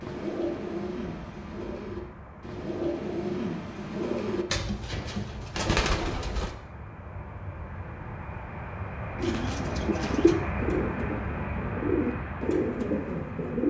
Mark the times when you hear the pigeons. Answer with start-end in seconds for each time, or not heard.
0.0-6.5, 9.2-13.6.